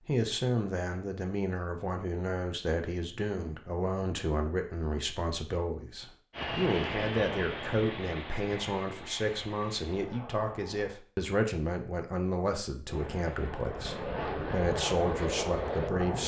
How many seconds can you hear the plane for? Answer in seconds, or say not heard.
8 s.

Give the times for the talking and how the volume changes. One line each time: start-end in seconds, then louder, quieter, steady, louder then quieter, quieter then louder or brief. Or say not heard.
0.1-16.2 steady.